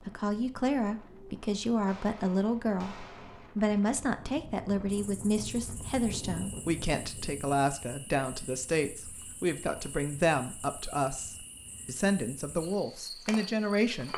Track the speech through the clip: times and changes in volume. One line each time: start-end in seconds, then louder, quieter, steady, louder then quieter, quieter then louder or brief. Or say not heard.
0.1-3.0 brief
3.5-14.1 steady.